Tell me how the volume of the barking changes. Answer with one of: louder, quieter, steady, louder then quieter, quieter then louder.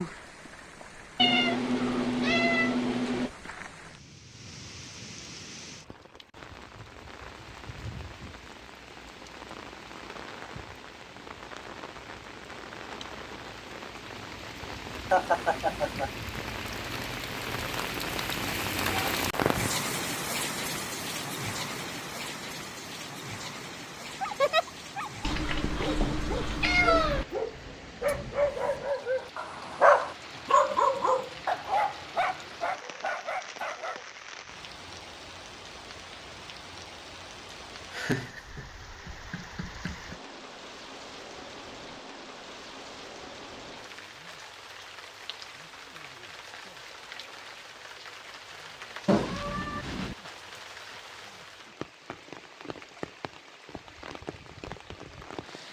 louder then quieter.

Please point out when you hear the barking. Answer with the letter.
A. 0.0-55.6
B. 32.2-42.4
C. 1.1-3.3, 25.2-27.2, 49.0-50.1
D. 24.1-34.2
D.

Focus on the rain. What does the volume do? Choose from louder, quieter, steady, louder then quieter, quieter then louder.
louder then quieter.